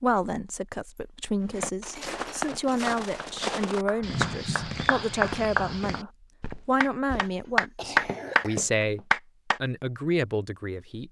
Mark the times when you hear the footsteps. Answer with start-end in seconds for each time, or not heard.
1.4-9.1.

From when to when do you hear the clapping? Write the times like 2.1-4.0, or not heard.
3.0-9.6.